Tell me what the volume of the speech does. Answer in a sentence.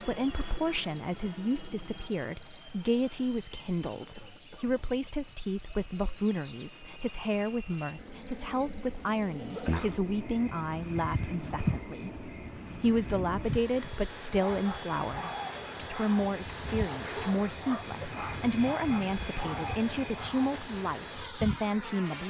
The loudness of the speech stays about the same.